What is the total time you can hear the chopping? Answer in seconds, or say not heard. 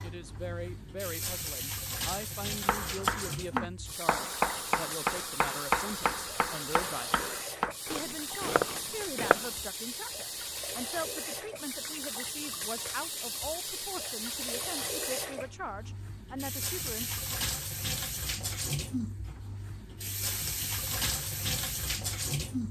7 s.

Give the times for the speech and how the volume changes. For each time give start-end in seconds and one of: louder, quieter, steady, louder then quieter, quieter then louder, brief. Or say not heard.
0.0-17.1 steady.